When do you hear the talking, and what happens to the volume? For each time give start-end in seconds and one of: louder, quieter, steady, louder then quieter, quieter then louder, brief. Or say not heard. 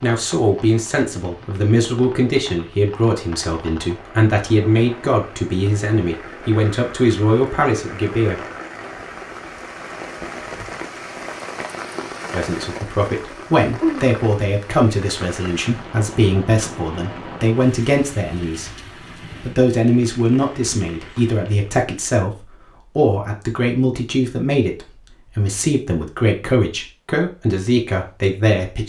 0.0-8.4 steady
12.3-28.8 steady.